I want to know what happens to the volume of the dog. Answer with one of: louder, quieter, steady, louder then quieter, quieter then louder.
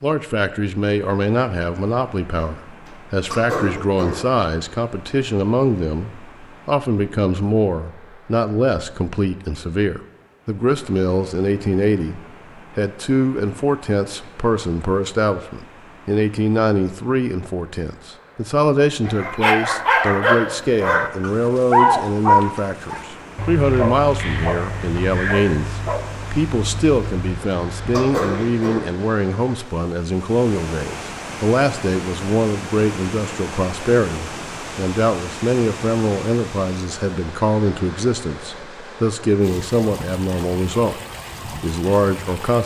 quieter.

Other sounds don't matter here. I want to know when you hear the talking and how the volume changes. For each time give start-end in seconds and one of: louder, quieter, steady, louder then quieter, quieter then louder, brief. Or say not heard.
0.0-41.0 steady
41.6-42.6 brief.